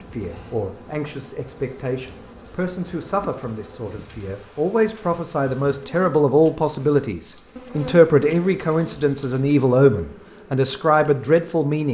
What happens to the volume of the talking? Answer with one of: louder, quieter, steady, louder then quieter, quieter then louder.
louder.